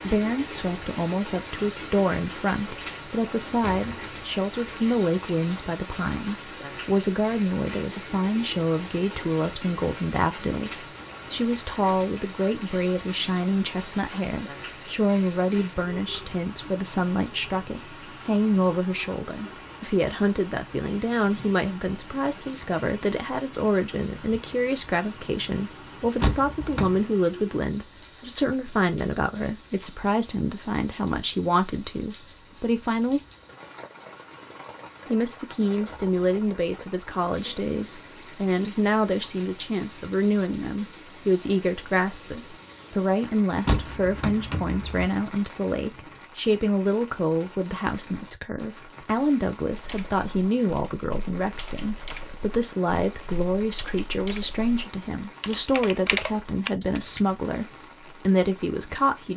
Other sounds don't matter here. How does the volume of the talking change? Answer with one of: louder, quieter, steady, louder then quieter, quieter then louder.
steady.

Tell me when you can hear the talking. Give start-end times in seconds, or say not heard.
0.0-33.2, 35.0-59.3.